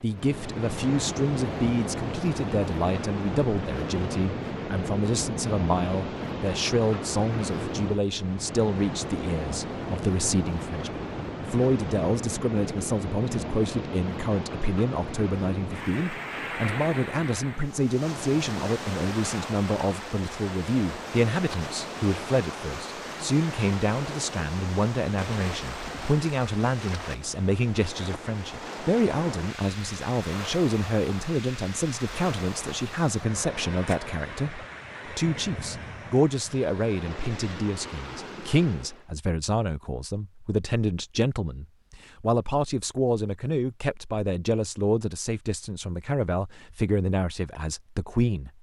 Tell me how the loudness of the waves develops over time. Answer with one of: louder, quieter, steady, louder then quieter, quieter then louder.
quieter.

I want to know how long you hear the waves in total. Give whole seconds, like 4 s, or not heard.
39 s.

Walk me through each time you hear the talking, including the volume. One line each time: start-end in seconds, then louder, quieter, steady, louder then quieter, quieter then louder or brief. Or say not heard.
0.0-48.5 steady.